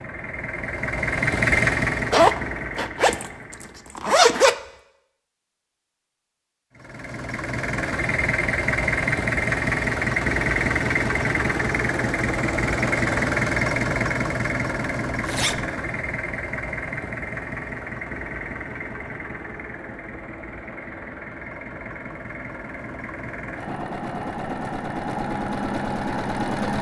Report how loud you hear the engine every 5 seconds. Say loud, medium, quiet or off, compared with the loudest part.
loud, loud, loud, medium, medium, loud.